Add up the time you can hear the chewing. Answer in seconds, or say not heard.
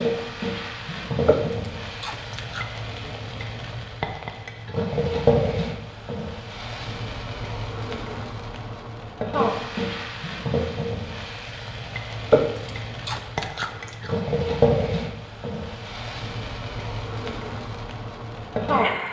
3 s.